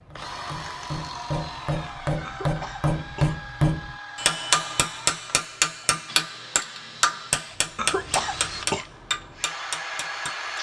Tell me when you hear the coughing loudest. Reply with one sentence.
The loudest moment of the coughing is at 8 seconds.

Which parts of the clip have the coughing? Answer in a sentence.
You can hear the coughing from 2.2 to 3.4 s and from 7.8 to 8.8 s.